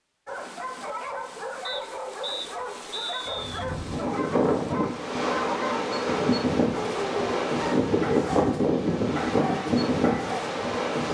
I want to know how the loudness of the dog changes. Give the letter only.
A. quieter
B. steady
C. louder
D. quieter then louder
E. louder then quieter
B.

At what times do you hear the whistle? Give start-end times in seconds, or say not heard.
1.6-3.6.